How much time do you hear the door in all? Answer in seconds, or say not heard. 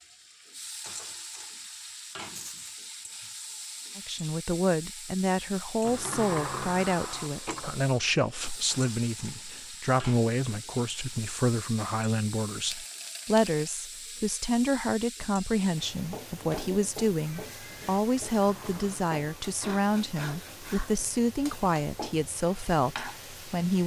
3 s.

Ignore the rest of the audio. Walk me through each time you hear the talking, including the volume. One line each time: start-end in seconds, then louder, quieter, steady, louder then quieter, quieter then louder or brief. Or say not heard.
4.0-23.8 steady.